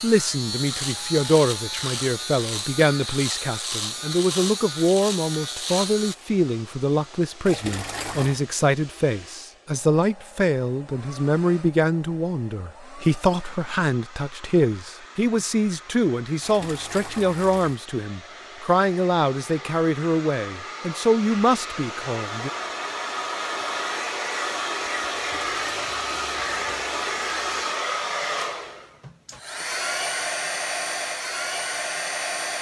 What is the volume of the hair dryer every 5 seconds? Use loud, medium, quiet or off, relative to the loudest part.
quiet, quiet, quiet, quiet, loud, loud, loud.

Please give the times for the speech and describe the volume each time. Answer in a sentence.
The speech can be heard from 0.0 to 22.5 s, at a steady volume.